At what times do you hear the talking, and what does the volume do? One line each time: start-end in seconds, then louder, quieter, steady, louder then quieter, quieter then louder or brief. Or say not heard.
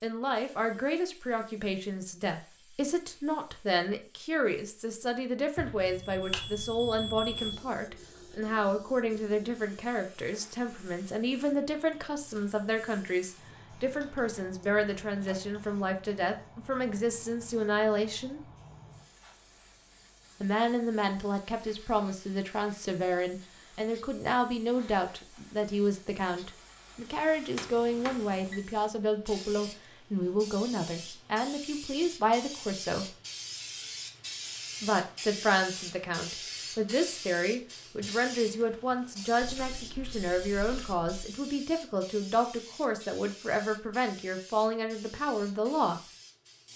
0.0-18.4 steady
20.4-33.1 steady
34.8-46.0 steady.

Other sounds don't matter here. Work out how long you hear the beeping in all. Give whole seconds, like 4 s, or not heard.
3 s.